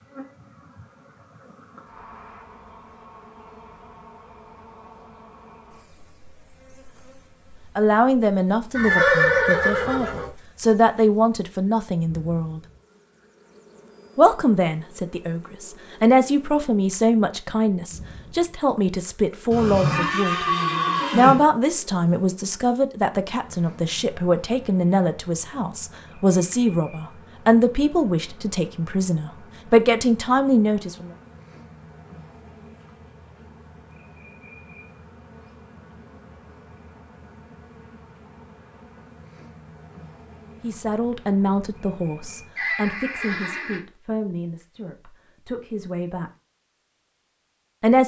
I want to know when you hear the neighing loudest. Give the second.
9 s.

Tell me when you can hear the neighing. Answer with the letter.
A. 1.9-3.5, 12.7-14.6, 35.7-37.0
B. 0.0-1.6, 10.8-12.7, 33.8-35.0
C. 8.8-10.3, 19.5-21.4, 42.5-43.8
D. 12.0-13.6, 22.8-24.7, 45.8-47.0
C.